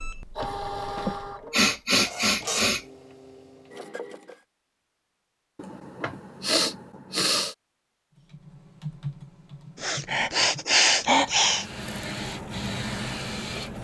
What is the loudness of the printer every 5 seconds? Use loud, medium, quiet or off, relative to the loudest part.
loud, off, loud.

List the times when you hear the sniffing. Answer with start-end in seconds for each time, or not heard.
0.9-2.8, 5.5-7.5, 9.8-11.7.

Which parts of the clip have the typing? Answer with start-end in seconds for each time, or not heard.
8.2-10.7.